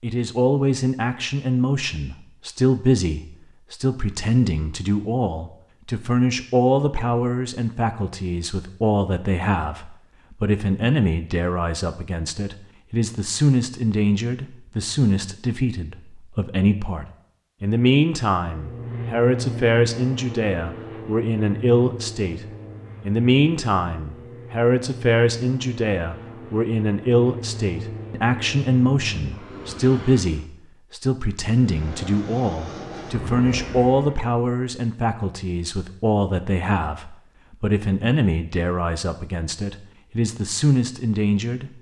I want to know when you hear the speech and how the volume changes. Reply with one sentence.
You can hear the speech from 0.0 to 41.7 s, at a steady volume.